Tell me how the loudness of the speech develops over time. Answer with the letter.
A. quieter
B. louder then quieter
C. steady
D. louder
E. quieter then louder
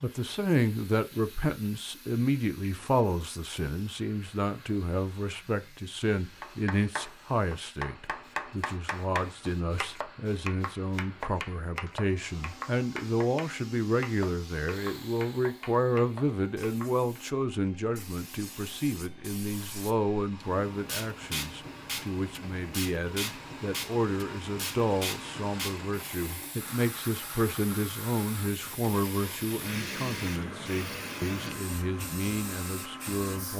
C.